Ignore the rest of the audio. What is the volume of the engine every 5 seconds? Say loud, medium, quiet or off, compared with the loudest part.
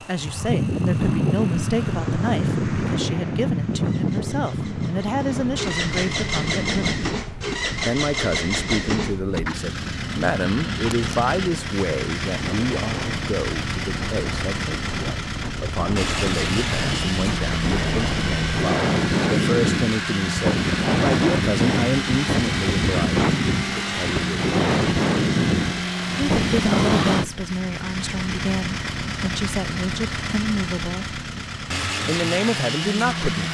quiet, loud, loud, loud, loud, loud, loud.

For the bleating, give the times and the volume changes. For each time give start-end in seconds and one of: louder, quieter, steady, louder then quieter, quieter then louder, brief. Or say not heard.
not heard.